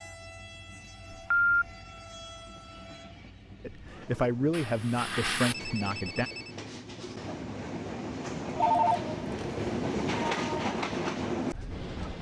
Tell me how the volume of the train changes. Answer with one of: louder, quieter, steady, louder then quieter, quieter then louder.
louder.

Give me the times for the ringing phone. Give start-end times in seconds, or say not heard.
1.1-1.6, 4.5-6.5, 8.6-9.4.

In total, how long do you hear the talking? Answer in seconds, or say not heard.
3 s.